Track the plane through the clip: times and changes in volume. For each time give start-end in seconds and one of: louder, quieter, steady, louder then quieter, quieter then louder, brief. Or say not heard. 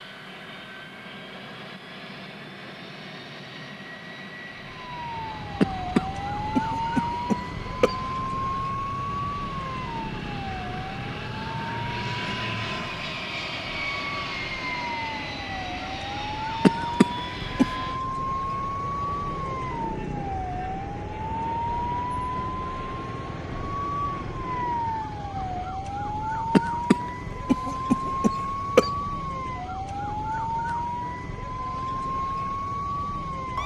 0.0-25.8 louder then quieter.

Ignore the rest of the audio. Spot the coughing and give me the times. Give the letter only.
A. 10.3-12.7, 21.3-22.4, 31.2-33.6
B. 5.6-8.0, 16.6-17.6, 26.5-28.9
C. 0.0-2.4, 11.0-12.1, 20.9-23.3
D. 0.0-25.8
B.